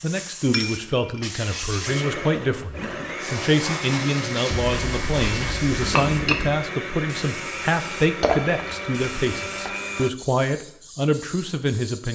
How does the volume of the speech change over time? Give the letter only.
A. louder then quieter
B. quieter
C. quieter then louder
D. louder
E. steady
E.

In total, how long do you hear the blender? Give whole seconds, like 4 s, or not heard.
8 s.